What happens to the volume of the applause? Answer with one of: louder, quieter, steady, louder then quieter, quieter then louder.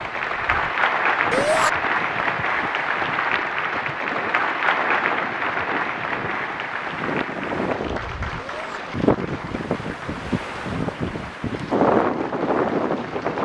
quieter.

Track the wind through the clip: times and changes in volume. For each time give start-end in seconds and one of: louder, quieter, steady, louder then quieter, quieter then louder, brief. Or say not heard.
0.0-13.4 louder.